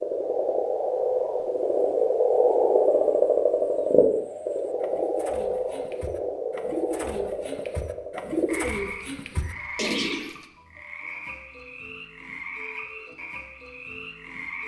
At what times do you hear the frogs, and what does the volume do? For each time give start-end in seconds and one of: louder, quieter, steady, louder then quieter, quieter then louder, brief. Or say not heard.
0.0-14.6 quieter.